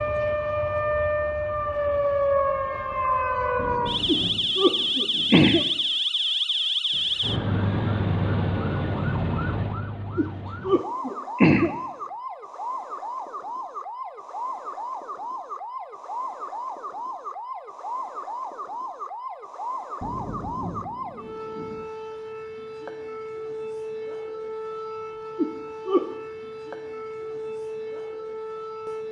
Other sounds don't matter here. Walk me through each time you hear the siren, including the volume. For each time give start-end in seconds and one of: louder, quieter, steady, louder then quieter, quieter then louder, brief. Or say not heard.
0.0-29.0 quieter.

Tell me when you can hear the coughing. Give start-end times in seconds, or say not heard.
4.0-5.7, 10.2-11.8, 25.4-26.1.